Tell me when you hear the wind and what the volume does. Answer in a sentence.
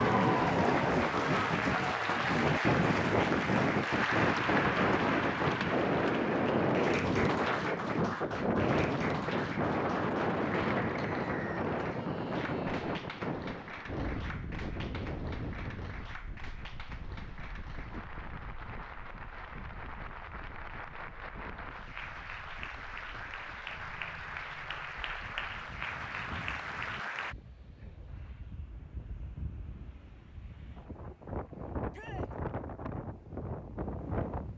You can hear the wind from 0.0 to 34.5 s, getting quieter then louder.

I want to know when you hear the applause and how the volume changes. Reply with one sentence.
The applause can be heard from 0.0 to 27.4 s, getting quieter then louder.